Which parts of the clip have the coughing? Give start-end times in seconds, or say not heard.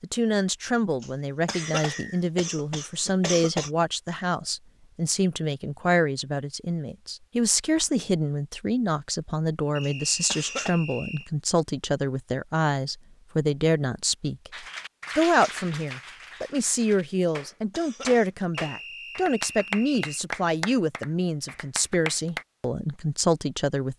1.0-3.7, 9.8-10.7, 17.2-18.3.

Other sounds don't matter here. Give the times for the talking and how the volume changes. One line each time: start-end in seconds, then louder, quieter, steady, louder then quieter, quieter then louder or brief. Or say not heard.
0.0-23.9 steady.